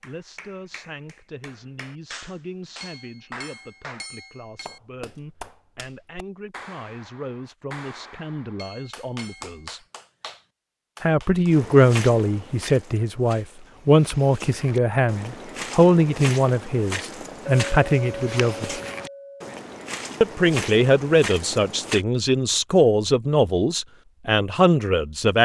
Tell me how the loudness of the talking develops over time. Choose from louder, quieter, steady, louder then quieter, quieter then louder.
louder.